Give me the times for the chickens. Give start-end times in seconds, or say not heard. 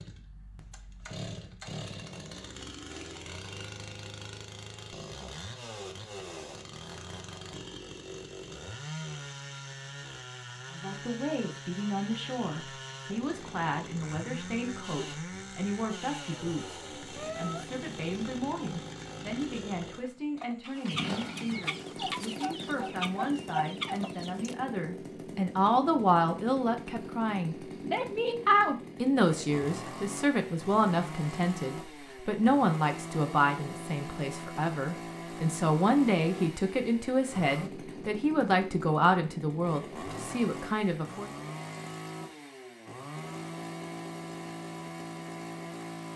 20.6-24.6.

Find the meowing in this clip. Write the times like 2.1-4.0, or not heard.
17.1-17.6.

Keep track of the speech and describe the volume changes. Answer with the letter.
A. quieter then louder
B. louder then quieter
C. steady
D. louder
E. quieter
D.